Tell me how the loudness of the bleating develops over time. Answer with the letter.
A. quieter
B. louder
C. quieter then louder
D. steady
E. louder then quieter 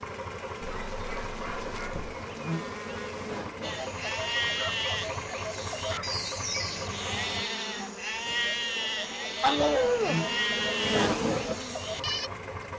D.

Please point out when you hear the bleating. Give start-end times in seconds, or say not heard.
3.6-12.3.